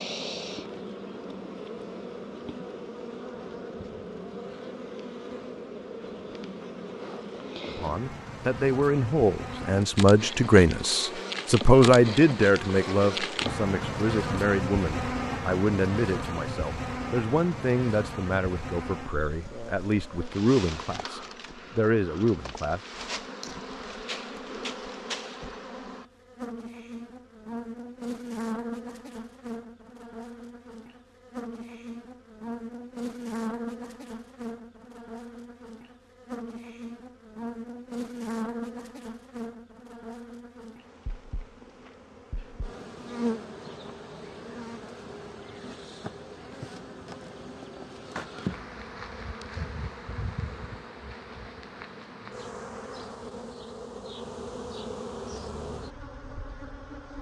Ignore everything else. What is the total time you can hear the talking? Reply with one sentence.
The talking can be heard for 15 seconds in total.